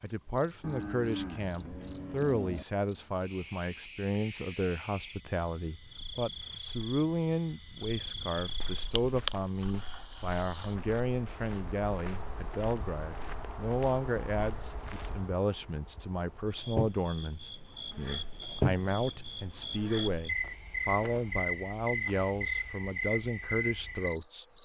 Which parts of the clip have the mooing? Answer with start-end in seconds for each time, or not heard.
0.6-2.6.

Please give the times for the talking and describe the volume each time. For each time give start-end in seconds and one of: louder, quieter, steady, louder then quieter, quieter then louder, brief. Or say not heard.
0.0-24.4 steady.